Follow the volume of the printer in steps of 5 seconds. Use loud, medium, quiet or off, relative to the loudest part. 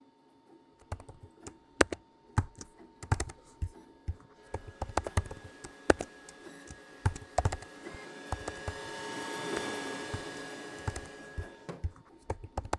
quiet, loud, loud.